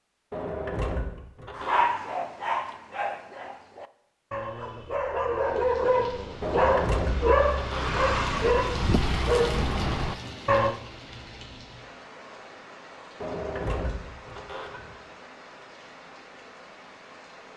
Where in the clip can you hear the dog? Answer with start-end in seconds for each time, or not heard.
1.6-10.8.